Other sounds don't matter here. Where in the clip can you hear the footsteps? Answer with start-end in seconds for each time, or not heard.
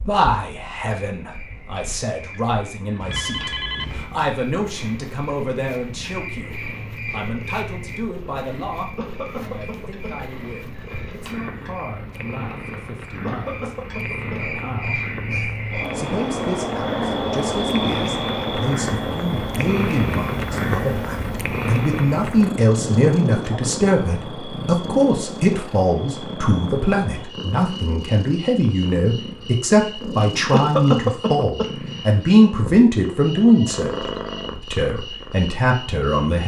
not heard.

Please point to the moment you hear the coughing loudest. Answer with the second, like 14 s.
31 s.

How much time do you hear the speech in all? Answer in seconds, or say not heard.
36 s.